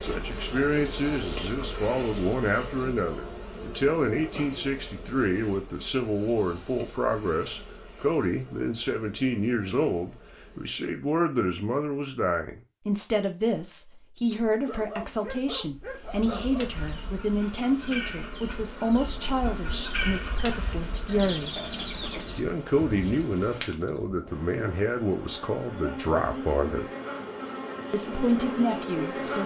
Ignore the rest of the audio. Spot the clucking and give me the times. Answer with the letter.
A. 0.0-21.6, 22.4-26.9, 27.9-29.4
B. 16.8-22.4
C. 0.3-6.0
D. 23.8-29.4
B.